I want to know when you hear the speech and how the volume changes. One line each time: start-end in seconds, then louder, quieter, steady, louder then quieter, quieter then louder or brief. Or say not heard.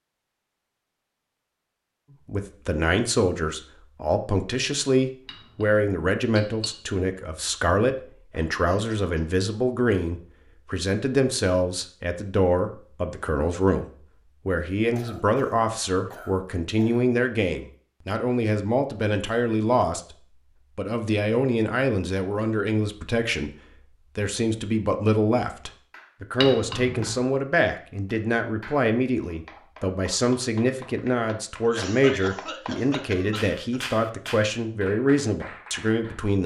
2.2-36.4 steady.